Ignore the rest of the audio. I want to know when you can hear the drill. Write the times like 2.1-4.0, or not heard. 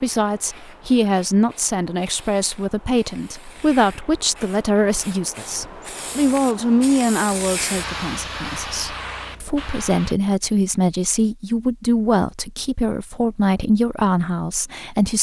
not heard.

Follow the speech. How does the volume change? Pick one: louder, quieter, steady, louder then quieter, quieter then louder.
steady.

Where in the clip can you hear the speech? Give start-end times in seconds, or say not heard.
0.0-15.1.